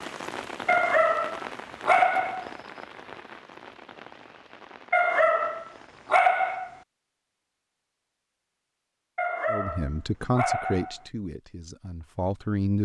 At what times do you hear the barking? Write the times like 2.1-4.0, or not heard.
0.7-2.5, 4.9-6.7, 9.2-11.0.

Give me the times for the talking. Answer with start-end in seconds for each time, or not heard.
9.4-12.7.